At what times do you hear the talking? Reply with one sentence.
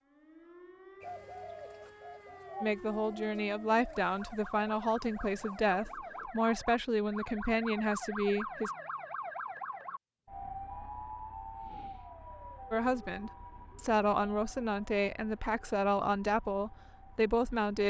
You can hear the talking from 2.6 to 8.7 s and from 12.7 to 17.8 s.